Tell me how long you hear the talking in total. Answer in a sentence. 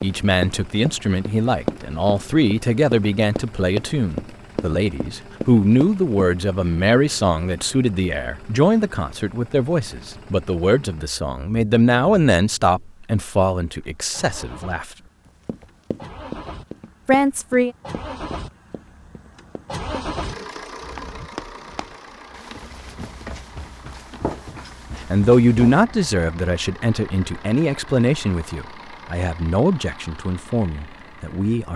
You can hear the talking for 22 seconds altogether.